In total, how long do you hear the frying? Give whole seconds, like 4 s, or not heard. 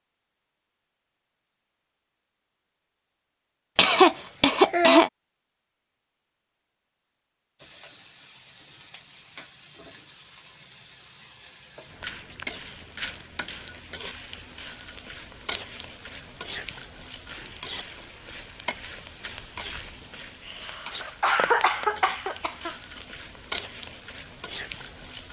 18 s.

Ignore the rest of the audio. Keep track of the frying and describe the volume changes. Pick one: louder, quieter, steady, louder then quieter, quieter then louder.
louder.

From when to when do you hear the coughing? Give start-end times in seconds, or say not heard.
3.8-5.1, 20.4-23.0.